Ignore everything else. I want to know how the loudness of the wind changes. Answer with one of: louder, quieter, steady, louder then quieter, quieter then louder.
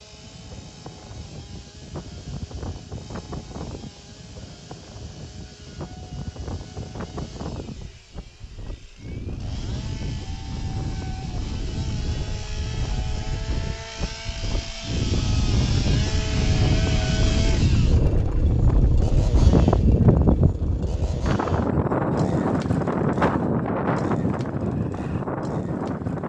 louder.